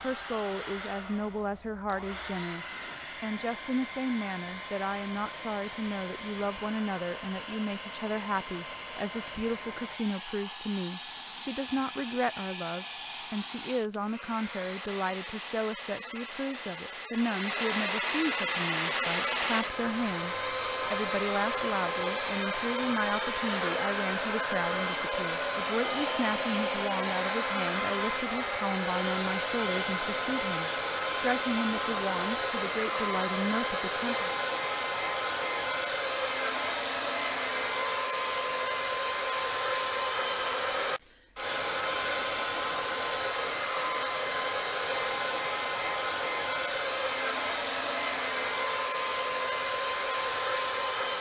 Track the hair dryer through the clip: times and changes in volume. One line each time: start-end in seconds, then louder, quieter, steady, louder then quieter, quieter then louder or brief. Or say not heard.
0.0-51.1 louder.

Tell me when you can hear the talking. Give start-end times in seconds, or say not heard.
0.0-34.4.